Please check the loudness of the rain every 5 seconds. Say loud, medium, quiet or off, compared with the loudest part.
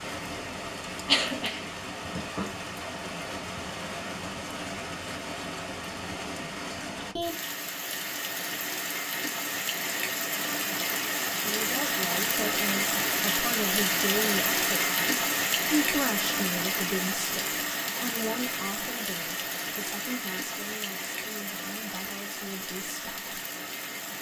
medium, medium, loud, loud, medium.